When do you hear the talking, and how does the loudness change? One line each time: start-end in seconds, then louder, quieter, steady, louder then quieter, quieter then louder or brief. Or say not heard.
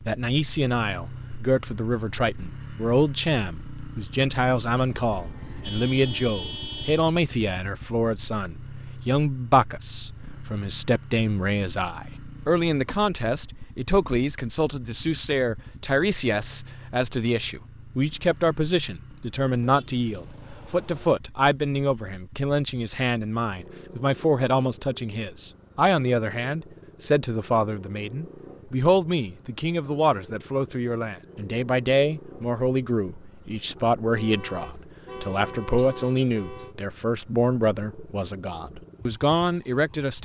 0.0-40.2 steady.